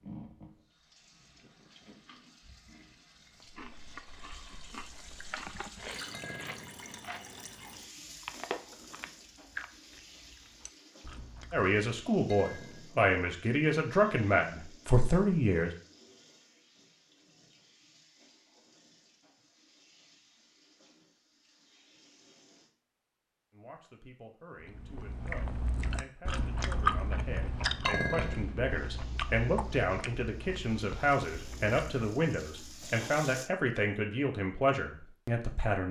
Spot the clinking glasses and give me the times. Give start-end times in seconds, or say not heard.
6.1-6.8, 12.2-12.9, 27.9-28.4.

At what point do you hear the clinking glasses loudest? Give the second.
28 s.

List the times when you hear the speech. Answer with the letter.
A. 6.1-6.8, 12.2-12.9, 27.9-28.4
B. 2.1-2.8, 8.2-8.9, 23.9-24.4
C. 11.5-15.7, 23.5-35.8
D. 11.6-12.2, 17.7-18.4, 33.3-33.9
C.